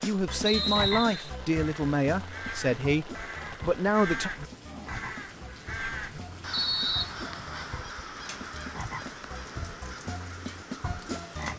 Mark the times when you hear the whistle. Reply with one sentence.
The whistle can be heard from 0.5 to 1.3 s and from 6.5 to 7.2 s.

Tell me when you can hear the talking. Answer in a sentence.
You can hear the talking from 0.0 to 4.3 s.